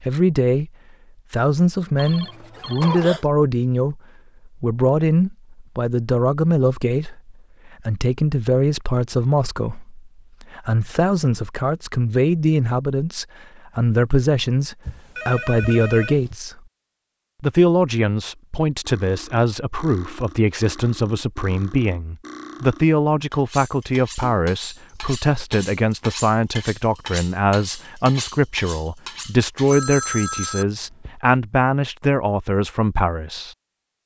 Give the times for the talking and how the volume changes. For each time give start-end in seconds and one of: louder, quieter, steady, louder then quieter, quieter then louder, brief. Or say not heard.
0.0-0.7 brief
1.3-16.6 steady
17.4-34.0 steady.